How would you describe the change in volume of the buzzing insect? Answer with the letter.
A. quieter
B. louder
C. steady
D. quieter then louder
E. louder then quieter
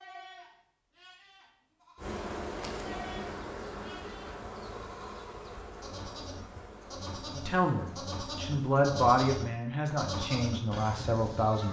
A.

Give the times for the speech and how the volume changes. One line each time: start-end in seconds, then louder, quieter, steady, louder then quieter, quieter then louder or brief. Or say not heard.
7.3-11.6 louder then quieter.